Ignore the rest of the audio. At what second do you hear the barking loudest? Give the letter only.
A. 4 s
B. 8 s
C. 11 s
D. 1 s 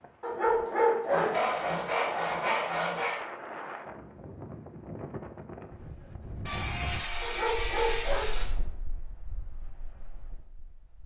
D.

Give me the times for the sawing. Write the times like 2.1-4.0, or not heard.
1.1-3.2, 6.5-8.4.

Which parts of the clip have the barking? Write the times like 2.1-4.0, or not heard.
0.2-1.4, 7.2-8.4.